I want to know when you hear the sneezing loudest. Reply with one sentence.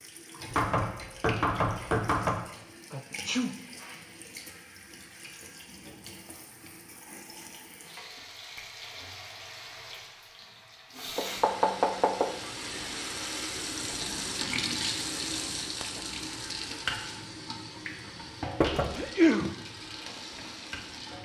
The volume of the sneezing peaks at 19 seconds.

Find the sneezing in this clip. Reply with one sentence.
The sneezing can be heard from 2.9 to 3.5 s and from 18.9 to 19.5 s.